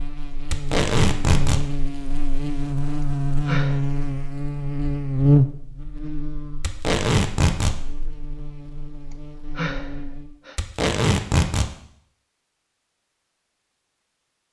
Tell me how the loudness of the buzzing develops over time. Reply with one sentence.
The volume of the buzzing goes up, then down.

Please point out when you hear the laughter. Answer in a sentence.
You can't hear the laughter here.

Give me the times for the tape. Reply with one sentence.
The tape can be heard from 0.5 to 1.6 s, from 6.6 to 7.8 s and from 10.6 to 11.7 s.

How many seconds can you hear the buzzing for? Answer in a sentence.
The buzzing can be heard for 10 seconds in total.